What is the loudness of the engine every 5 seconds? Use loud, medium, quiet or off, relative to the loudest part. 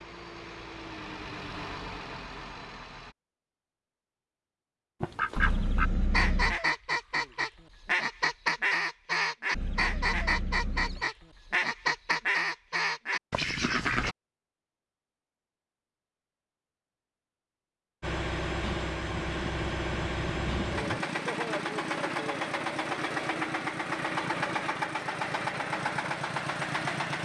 medium, off, off, loud, loud, loud.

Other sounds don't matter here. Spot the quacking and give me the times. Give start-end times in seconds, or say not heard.
5.0-14.2.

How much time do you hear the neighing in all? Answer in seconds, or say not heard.
5 s.